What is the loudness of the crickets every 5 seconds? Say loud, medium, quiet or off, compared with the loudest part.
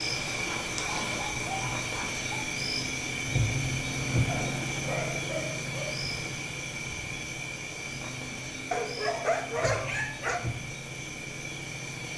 loud, medium, medium.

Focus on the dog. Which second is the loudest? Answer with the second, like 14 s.
9 s.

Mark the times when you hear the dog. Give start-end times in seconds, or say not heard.
0.5-2.5, 4.2-6.0, 8.7-10.4.